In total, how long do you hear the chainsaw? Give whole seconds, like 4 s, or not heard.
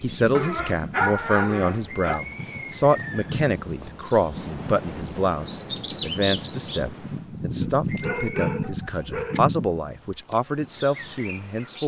not heard.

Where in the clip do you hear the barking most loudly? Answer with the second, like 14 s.
1 s.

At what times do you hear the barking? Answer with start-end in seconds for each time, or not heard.
0.3-2.2, 7.6-9.4.